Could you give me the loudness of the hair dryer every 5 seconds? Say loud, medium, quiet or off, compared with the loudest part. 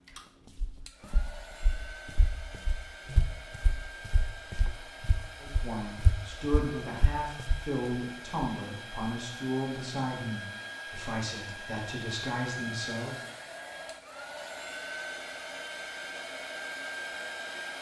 medium, medium, loud, loud.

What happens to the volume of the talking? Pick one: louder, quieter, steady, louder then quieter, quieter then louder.
steady.